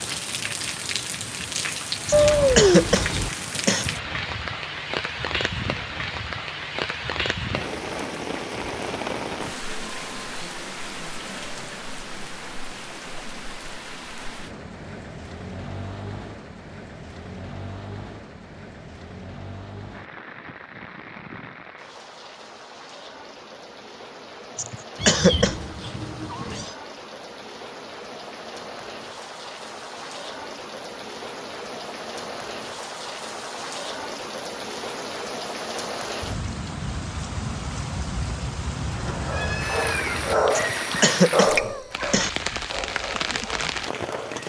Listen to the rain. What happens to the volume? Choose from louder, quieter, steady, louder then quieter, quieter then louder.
quieter then louder.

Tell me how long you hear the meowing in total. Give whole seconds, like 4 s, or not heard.
5 s.